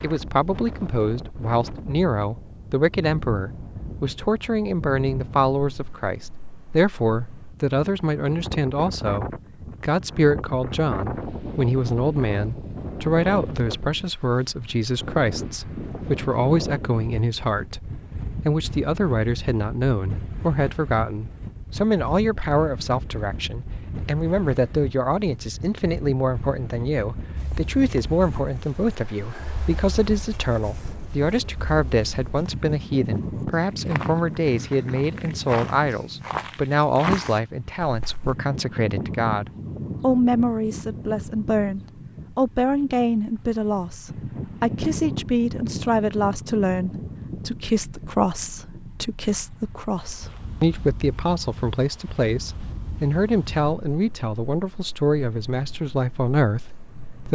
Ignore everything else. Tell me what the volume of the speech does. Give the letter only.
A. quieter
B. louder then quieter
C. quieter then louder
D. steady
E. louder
D.